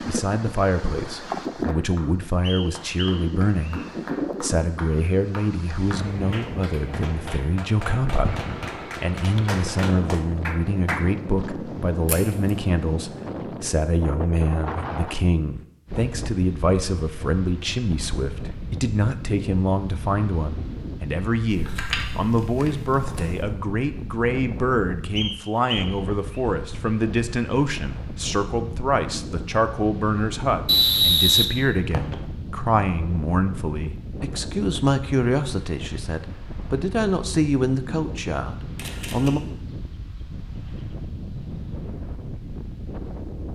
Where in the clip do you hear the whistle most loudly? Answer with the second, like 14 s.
31 s.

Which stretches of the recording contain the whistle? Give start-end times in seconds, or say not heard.
2.4-3.8, 25.1-26.4, 30.6-32.1.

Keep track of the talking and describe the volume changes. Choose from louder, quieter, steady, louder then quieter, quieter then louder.
steady.